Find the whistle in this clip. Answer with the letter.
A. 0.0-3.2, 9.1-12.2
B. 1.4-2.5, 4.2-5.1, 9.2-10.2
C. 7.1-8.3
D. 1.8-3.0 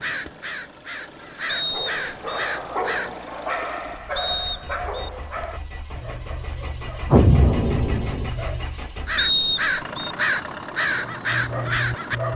B.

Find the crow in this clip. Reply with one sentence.
You can hear the crow from 0.0 to 3.2 s and from 9.1 to 12.2 s.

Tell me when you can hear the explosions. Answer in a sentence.
You can hear the explosions from 7.1 to 8.3 s.